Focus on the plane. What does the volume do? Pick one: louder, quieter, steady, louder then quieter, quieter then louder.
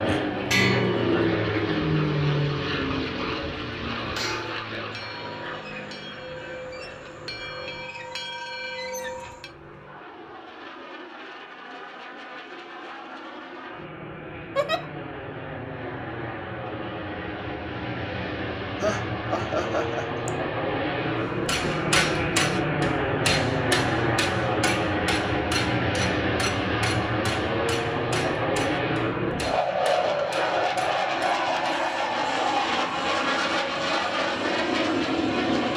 quieter then louder.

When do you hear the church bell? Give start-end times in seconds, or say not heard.
0.3-9.5.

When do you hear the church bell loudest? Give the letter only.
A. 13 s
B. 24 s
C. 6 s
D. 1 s
D.